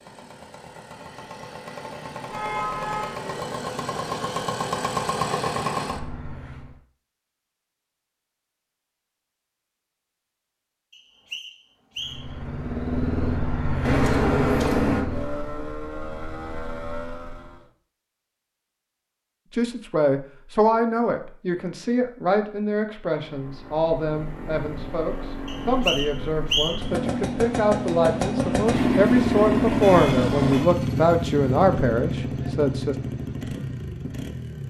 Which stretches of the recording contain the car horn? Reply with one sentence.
You can hear the car horn from 2.3 to 3.1 s, from 13.8 to 15.1 s and from 29.8 to 30.6 s.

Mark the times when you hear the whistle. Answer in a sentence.
You can hear the whistle from 10.9 to 12.3 s and from 25.4 to 26.9 s.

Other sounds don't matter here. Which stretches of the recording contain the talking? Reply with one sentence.
The talking can be heard from 19.5 to 33.0 s.